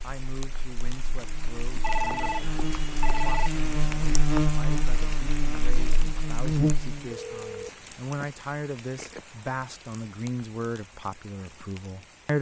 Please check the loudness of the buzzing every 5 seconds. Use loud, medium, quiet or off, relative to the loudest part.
loud, loud, off.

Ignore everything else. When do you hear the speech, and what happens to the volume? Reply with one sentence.
You can hear the speech from 0.0 to 12.3 s, getting louder.